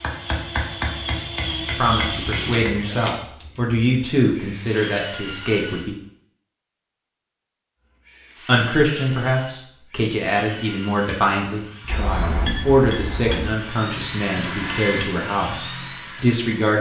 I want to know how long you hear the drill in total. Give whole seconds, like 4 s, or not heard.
15 s.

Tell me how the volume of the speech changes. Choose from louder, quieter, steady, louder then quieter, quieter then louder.
steady.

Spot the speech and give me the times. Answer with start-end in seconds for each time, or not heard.
1.8-6.0, 8.4-16.7.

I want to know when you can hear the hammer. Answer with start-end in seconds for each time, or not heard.
0.0-2.9, 11.8-13.6.